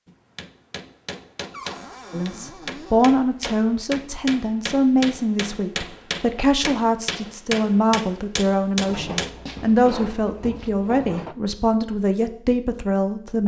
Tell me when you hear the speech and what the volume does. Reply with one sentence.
You can hear the speech from 2.1 to 13.4 s, at a steady volume.